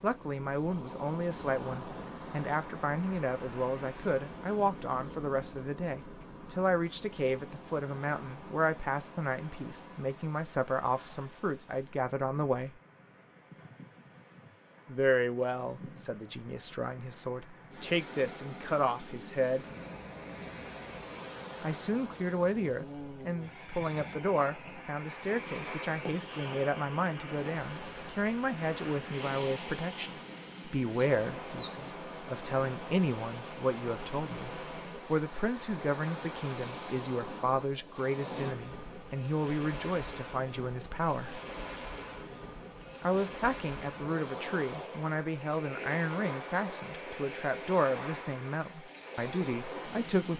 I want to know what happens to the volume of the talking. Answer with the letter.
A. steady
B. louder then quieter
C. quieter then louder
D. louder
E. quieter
A.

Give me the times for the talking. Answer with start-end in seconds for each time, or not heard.
0.0-12.8, 14.8-19.6, 21.6-41.4, 43.0-50.3.